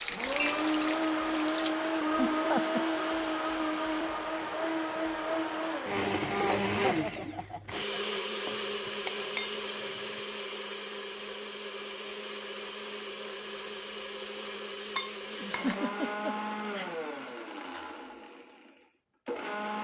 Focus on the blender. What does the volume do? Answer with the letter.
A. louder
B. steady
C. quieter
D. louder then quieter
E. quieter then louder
C.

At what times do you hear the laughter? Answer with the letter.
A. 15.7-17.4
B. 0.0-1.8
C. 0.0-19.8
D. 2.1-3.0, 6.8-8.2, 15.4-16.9
D.